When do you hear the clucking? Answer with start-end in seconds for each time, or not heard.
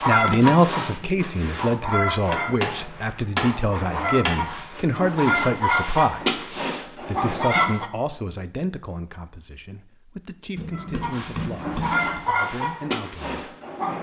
0.0-7.9, 10.7-13.9.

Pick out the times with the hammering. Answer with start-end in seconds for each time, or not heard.
2.3-4.7, 10.6-12.2.